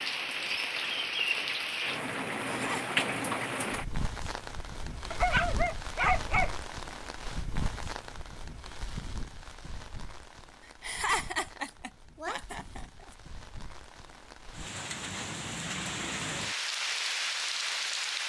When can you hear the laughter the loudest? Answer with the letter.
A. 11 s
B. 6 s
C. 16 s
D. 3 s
A.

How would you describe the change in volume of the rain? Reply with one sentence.
The volume of the rain goes down, then up.